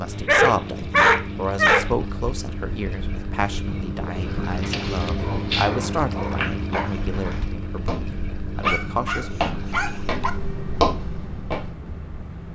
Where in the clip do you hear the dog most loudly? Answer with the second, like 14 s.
1 s.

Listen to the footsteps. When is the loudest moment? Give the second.
11 s.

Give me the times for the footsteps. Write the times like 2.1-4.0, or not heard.
4.6-11.9.